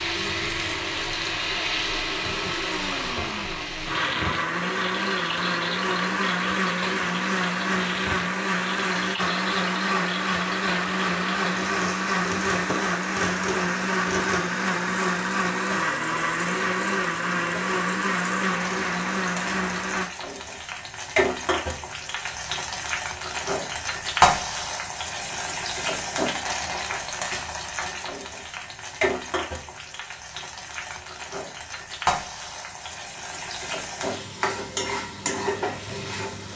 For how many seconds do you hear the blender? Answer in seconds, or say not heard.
20 s.